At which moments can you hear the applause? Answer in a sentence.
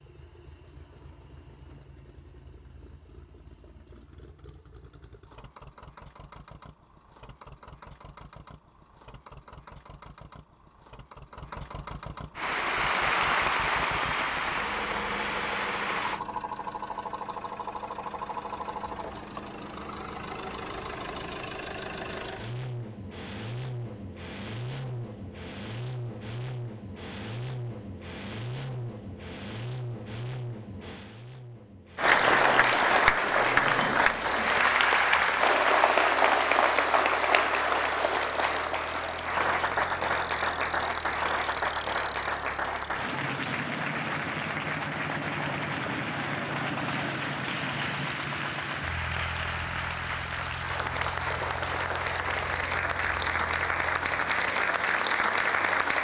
You can hear the applause from 12.3 to 16.2 s and from 31.9 to 55.9 s.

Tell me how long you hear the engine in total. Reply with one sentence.
The engine can be heard for 56 seconds in total.